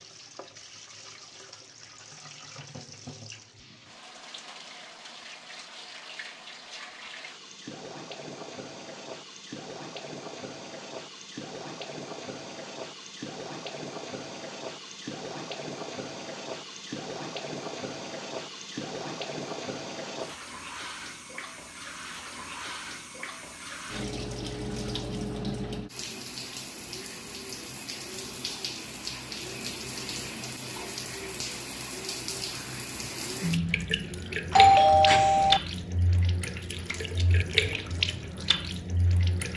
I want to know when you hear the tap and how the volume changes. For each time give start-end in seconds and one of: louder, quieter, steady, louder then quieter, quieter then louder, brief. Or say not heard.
0.0-39.5 louder.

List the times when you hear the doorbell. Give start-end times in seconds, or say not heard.
34.5-35.6.